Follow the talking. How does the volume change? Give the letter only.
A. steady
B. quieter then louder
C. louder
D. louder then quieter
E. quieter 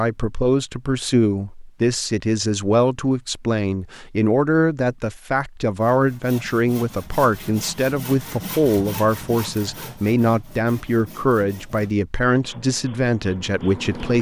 A.